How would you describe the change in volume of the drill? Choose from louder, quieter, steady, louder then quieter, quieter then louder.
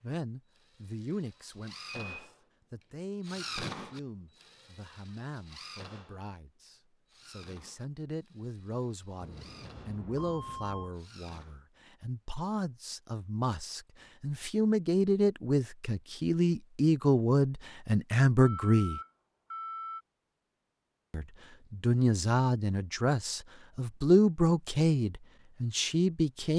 louder then quieter.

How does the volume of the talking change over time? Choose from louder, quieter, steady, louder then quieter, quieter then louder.
louder.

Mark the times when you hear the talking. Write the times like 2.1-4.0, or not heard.
0.0-19.0, 21.1-26.5.